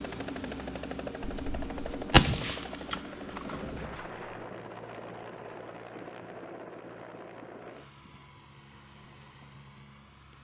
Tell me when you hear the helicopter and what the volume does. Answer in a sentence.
The helicopter can be heard from 0.0 to 10.3 s, getting quieter.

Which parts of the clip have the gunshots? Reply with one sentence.
You can hear the gunshots from 1.2 to 4.5 s.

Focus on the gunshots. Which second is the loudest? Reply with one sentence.
The loudest moment of the gunshots is at 2 seconds.